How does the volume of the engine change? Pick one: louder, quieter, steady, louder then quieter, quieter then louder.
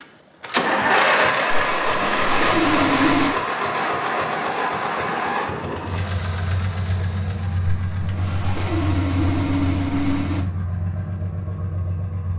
quieter.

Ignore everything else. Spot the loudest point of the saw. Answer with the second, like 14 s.
3 s.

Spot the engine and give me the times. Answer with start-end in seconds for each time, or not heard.
0.0-12.3.